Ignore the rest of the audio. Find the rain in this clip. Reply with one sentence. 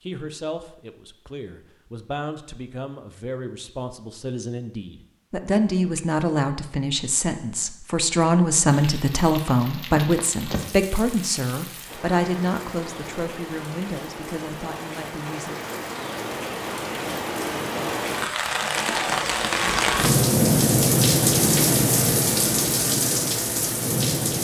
The rain can be heard from 8.7 to 24.4 s.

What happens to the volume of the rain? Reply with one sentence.
The volume of the rain goes up.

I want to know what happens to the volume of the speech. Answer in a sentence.
The loudness of the speech goes up, then down.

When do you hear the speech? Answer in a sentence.
The speech can be heard from 0.0 to 15.6 s.